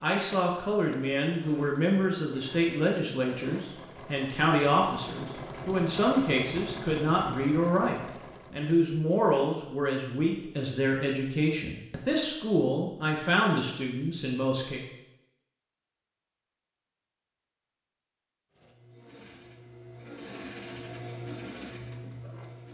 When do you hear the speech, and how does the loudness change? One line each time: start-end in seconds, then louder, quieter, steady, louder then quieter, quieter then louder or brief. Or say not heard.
0.0-14.8 steady.